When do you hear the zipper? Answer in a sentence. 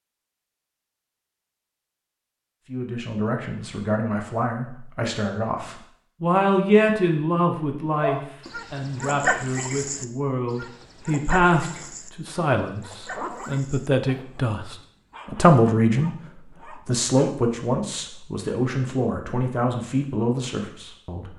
The zipper can be heard from 13.1 to 14.4 s.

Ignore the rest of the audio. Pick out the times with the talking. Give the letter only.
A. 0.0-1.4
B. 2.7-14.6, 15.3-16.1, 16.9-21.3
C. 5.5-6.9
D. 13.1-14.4
B.